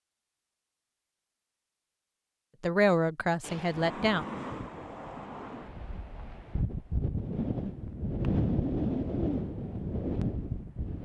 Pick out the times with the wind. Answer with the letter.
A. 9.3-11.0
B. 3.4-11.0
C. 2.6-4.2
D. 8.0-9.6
B.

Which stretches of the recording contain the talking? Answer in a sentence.
You can hear the talking from 2.6 to 4.2 s.